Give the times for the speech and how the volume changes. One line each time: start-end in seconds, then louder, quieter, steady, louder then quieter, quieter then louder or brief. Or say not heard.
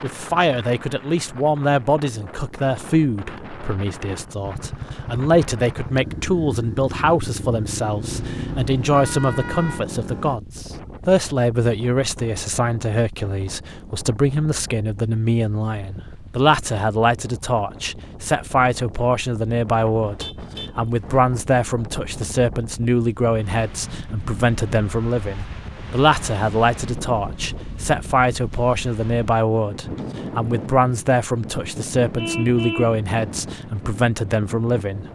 0.0-35.0 steady.